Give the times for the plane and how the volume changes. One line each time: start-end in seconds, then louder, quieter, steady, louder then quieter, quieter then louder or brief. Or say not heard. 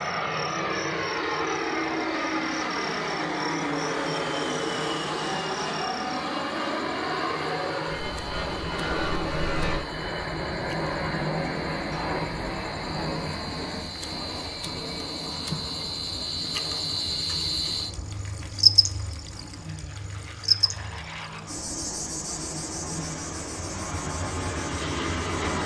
0.0-25.6 quieter then louder.